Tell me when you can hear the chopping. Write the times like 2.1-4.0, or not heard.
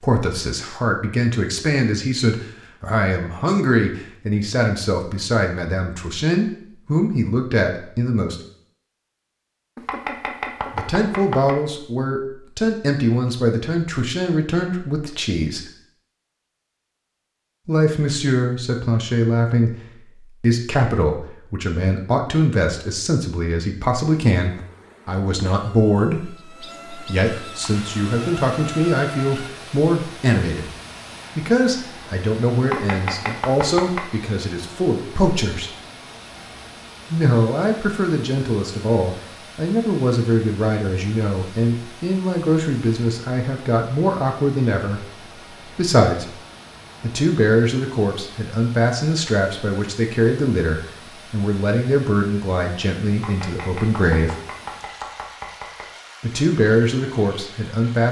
9.8-11.6, 32.6-34.0, 53.1-56.0.